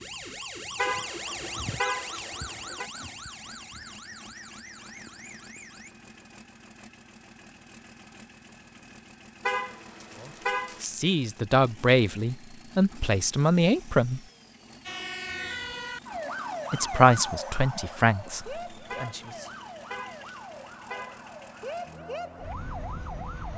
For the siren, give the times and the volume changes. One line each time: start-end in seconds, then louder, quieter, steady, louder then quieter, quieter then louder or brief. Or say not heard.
0.0-5.9 quieter
14.8-23.5 quieter then louder.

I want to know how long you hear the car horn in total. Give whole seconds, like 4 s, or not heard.
6 s.